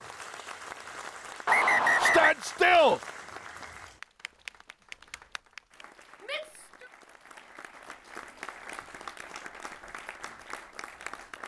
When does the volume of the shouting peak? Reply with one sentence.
The loudest moment of the shouting is at 3 seconds.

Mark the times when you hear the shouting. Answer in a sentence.
The shouting can be heard from 2.0 to 3.0 s and from 6.2 to 6.9 s.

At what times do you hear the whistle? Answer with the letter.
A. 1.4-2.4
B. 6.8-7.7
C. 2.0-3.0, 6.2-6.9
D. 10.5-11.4
A.